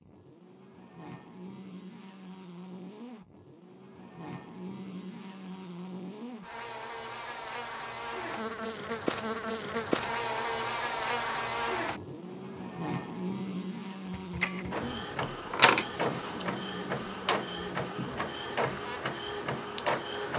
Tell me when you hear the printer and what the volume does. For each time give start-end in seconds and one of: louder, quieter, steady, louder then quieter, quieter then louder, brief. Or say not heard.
14.1-20.3 louder then quieter.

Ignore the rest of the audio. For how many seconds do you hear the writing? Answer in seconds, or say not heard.
not heard.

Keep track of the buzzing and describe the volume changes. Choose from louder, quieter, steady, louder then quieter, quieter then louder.
louder then quieter.